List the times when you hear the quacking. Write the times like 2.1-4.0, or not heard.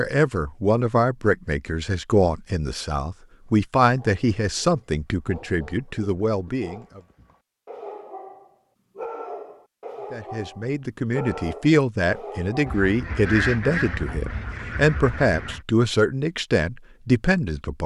12.7-15.7.